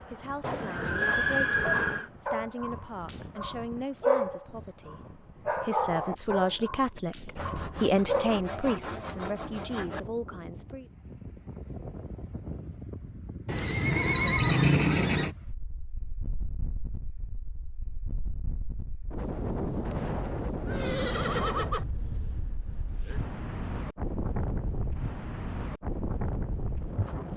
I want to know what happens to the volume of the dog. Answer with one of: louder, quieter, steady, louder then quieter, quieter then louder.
louder then quieter.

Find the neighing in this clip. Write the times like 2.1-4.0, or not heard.
0.4-2.1, 13.4-15.3, 20.6-21.9.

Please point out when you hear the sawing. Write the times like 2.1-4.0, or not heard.
7.3-10.1.